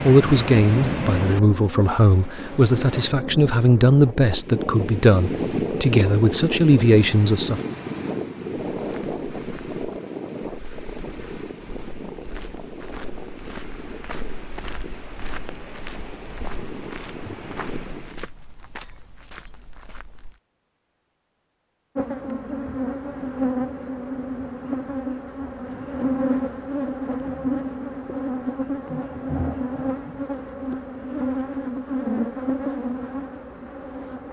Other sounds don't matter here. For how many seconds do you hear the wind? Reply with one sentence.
You can hear the wind for 18 seconds altogether.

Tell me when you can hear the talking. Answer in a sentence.
You can hear the talking from 0.0 to 7.6 s.